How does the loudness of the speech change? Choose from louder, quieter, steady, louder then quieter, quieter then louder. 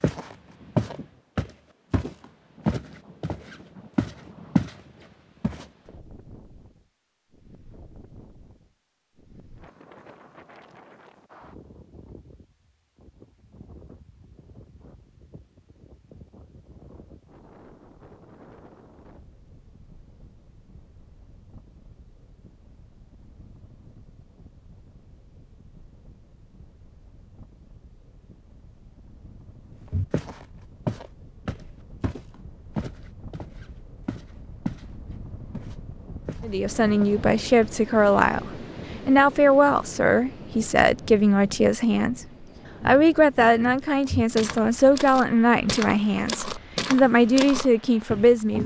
steady.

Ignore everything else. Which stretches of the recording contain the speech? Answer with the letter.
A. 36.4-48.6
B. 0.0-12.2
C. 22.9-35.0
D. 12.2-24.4
A.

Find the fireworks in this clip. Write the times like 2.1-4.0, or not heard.
not heard.